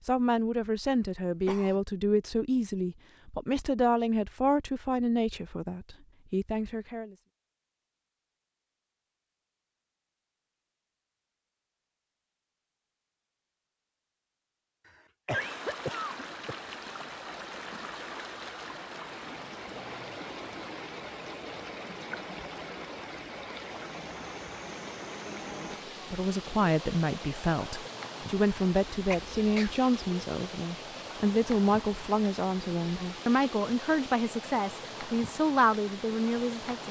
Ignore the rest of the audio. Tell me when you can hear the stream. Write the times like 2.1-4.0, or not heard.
15.3-36.8.